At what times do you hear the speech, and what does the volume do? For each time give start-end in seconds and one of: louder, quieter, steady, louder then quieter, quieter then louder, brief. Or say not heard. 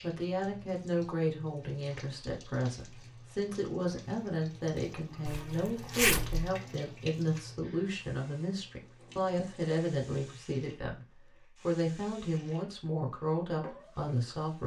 0.0-14.6 steady.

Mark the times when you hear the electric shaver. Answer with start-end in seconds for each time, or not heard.
not heard.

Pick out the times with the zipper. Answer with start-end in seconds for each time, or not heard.
5.2-6.5.